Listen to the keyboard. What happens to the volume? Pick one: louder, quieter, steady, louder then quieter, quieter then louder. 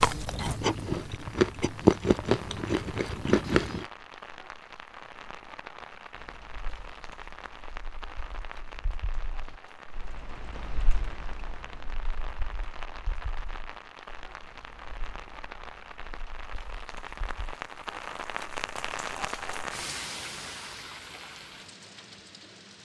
louder then quieter.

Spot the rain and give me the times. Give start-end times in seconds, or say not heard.
0.0-22.7.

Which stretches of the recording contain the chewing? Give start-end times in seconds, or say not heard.
0.0-3.9.